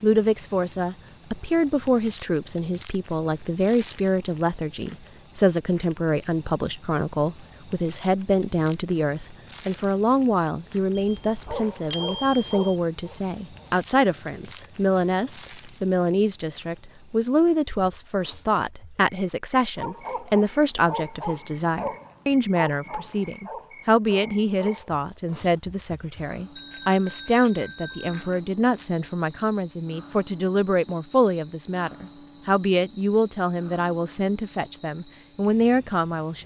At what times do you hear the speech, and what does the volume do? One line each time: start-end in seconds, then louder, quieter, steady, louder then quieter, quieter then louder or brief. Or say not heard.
0.0-36.4 steady.